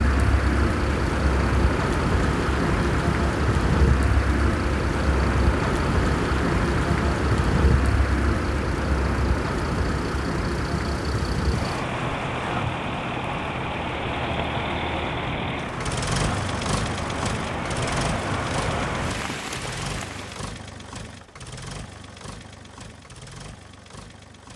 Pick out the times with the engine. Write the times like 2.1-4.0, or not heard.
0.0-24.5.